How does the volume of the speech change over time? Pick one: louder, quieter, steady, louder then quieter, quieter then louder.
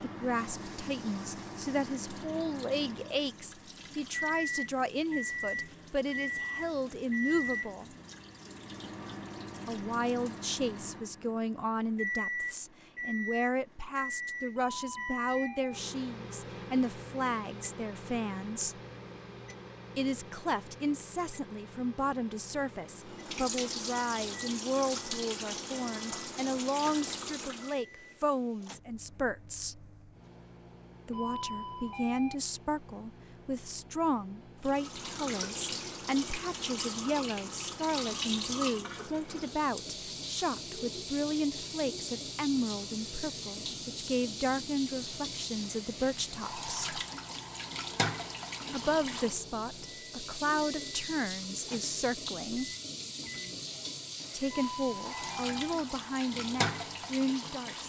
steady.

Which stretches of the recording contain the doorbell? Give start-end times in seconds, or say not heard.
14.6-15.8, 31.1-32.4, 54.5-55.8.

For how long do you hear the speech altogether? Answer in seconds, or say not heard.
50 s.